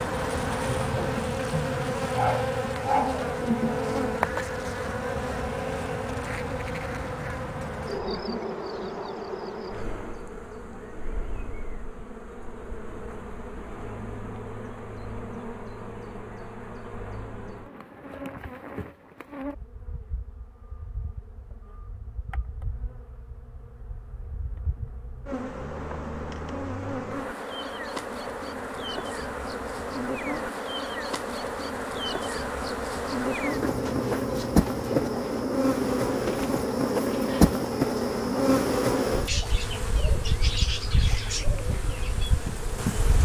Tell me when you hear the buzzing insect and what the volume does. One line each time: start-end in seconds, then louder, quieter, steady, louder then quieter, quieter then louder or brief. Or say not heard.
0.0-43.2 quieter then louder.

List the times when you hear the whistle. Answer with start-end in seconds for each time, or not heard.
not heard.